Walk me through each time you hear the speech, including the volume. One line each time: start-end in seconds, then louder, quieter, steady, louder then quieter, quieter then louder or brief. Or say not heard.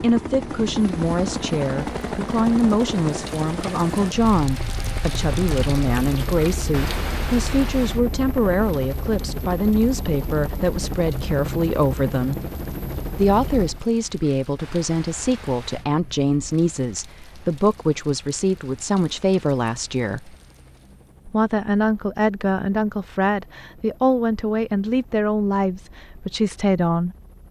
0.0-12.4 steady
13.2-20.4 steady
21.2-27.1 steady.